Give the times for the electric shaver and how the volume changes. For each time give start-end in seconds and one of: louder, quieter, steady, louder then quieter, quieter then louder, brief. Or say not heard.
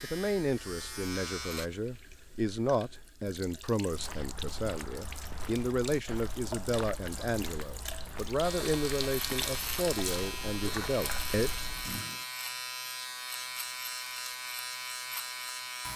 0.0-1.7 brief
8.4-15.9 steady.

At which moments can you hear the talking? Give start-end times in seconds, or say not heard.
0.0-11.5.